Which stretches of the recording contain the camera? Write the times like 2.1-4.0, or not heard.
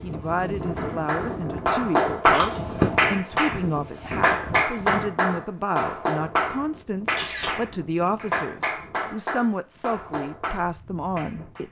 2.3-2.9, 7.0-7.6.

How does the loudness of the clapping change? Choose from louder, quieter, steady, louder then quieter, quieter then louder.
quieter.